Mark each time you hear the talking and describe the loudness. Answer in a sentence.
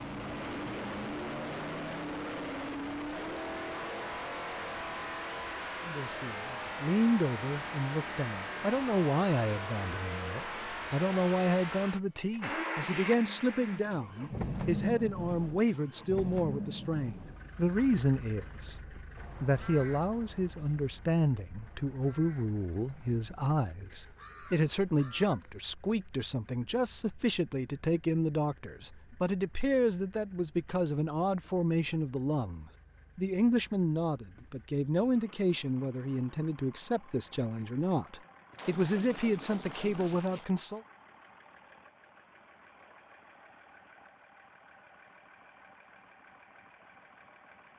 You can hear the talking from 5.8 to 40.8 s, at a steady volume.